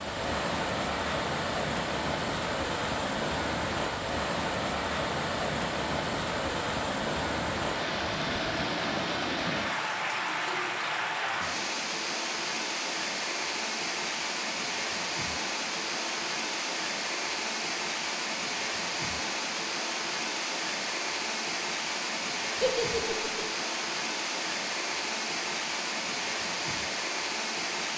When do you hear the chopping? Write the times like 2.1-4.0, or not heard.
not heard.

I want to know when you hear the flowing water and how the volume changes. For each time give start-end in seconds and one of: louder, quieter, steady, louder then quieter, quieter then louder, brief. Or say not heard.
0.0-27.9 steady.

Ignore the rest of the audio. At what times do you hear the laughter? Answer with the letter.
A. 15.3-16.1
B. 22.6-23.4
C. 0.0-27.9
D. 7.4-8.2
B.